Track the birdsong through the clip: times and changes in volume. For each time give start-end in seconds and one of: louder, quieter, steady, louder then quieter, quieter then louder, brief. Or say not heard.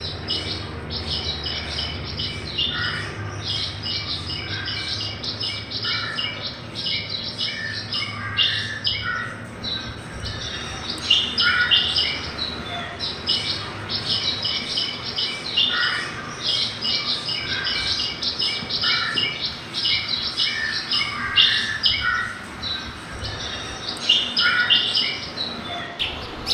0.0-26.4 louder.